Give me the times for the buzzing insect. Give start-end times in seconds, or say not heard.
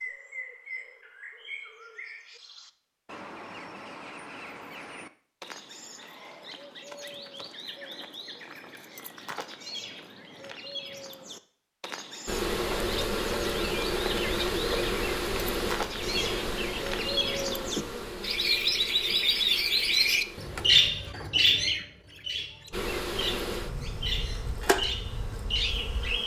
12.2-20.9, 22.7-26.2.